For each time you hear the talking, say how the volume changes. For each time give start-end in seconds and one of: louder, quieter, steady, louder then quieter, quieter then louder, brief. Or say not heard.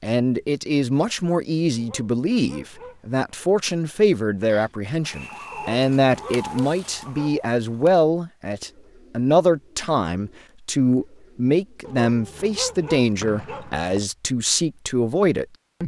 0.0-15.8 steady.